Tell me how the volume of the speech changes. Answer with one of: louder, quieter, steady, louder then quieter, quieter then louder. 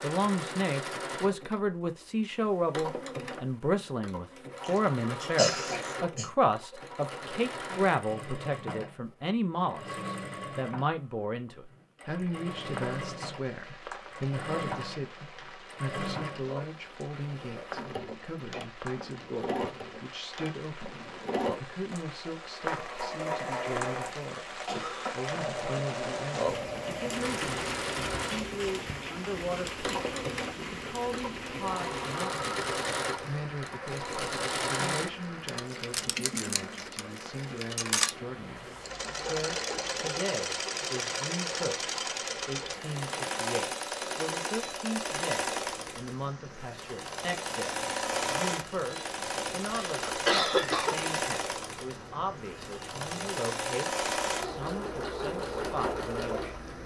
quieter.